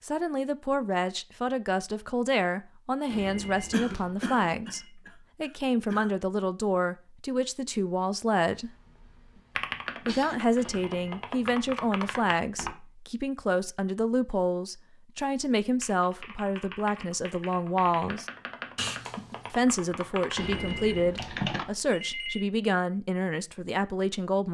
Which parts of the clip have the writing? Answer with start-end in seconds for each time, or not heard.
not heard.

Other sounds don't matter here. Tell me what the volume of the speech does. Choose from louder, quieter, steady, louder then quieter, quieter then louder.
steady.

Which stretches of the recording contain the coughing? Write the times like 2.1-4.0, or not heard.
3.7-6.1, 8.5-10.4, 18.8-19.6.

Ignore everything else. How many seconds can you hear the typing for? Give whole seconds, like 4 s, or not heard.
9 s.